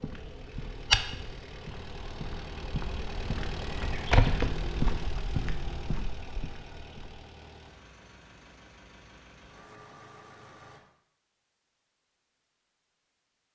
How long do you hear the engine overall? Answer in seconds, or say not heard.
11 s.